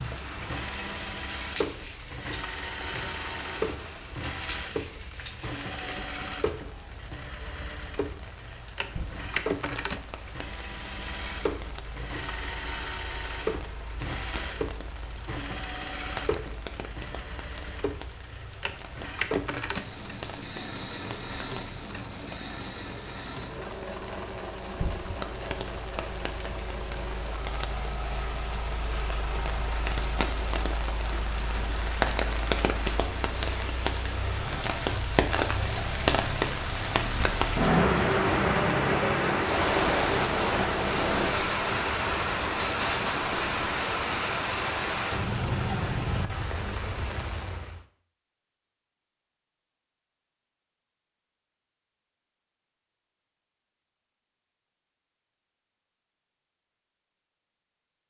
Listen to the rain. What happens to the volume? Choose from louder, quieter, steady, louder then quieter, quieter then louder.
louder.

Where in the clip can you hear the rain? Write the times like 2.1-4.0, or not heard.
0.0-47.9.